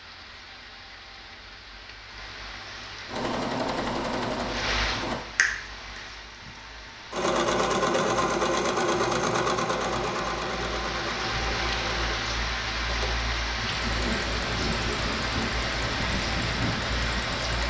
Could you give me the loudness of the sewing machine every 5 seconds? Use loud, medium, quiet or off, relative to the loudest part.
medium, loud, medium, quiet.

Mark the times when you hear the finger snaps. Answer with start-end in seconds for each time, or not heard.
5.3-6.0.